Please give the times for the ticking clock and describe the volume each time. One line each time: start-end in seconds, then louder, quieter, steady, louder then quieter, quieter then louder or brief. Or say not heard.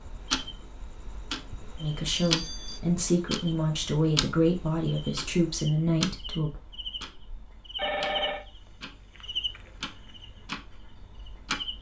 0.0-11.7 quieter.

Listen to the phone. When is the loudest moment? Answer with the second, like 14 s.
8 s.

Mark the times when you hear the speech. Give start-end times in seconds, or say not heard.
1.8-6.6.